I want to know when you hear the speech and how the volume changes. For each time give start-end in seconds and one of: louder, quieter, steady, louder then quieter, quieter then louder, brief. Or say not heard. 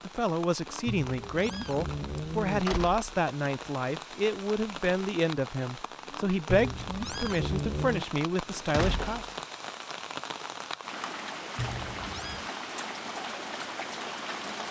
0.1-9.2 steady.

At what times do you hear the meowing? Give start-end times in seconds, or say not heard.
0.8-2.6, 6.5-8.1, 11.6-12.5.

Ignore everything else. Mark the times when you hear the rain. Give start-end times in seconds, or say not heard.
0.0-14.6.